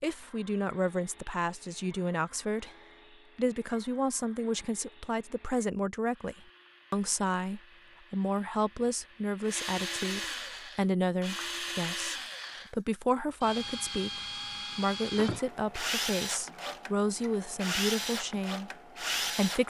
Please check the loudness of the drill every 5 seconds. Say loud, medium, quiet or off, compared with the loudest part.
quiet, medium, loud, loud.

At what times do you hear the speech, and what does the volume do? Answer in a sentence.
You can hear the speech briefly from 0.0 to 2.7 s; and from 3.4 to 19.6 s, at a steady volume.